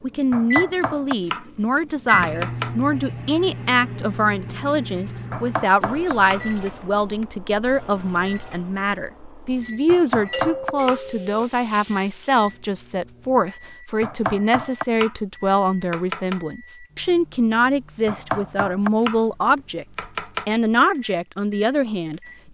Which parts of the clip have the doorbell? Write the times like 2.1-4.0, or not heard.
10.3-11.3.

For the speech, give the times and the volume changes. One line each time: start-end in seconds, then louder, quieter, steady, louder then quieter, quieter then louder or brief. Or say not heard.
0.0-22.5 steady.